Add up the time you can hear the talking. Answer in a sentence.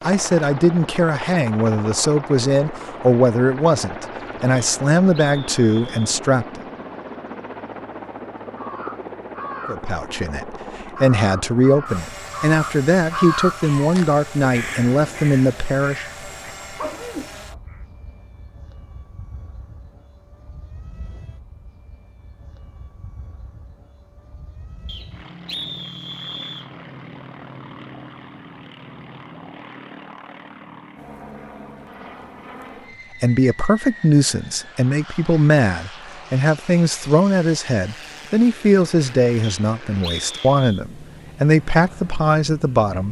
You can hear the talking for 23 seconds altogether.